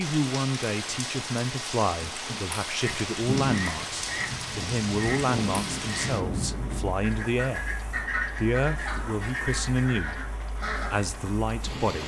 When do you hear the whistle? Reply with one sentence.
The whistle can't be heard in this clip.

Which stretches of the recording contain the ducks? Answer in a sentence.
The ducks can be heard from 2.8 to 11.1 s.